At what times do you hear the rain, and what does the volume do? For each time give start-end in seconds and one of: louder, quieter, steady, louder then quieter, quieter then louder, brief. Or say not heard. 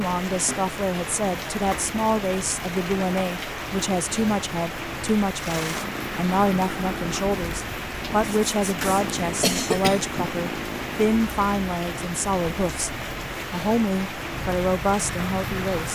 0.0-15.8 steady.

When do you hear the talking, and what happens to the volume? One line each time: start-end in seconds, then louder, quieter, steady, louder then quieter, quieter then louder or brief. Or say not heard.
0.0-15.8 steady.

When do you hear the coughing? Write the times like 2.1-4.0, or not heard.
9.2-10.3.